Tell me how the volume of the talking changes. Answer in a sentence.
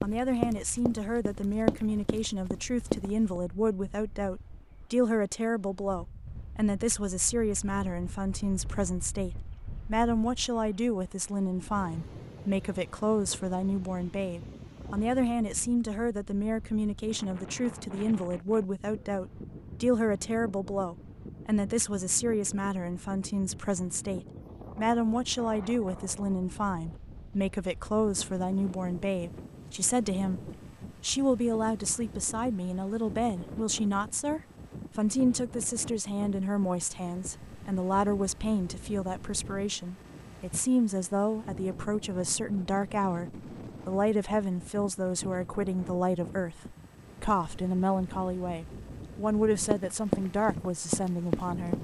The volume of the talking stays about the same.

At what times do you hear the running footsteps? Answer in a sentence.
The running footsteps can be heard from 0.0 to 3.4 s and from 49.7 to 51.7 s.